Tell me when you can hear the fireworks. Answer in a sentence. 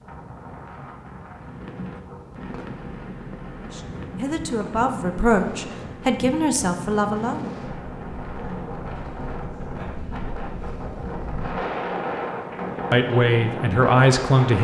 You can hear the fireworks from 1.3 to 9.5 s.